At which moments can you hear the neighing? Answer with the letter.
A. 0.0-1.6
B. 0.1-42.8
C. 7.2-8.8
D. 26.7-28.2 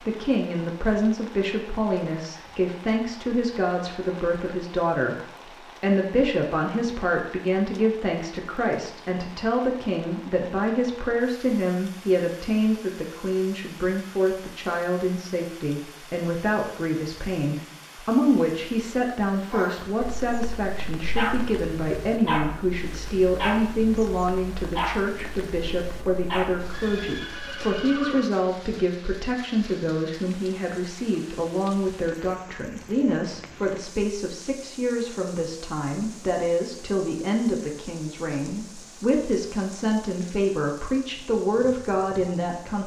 D.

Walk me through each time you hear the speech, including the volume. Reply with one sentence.
You can hear the speech from 0.1 to 42.8 s, at a steady volume.